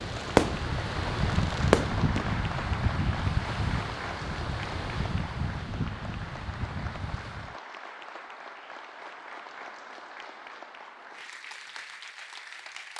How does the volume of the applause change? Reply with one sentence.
The loudness of the applause goes down.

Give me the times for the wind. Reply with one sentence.
You can hear the wind from 0.0 to 7.5 s.